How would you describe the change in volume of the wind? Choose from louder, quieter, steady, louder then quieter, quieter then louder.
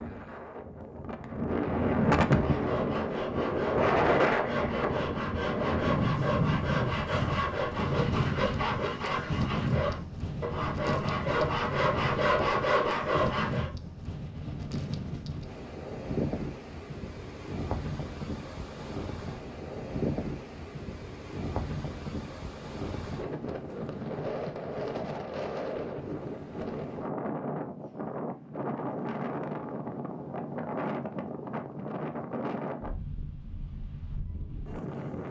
quieter.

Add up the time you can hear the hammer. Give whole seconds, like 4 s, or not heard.
not heard.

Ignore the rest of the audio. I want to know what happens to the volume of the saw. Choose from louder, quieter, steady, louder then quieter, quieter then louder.
louder.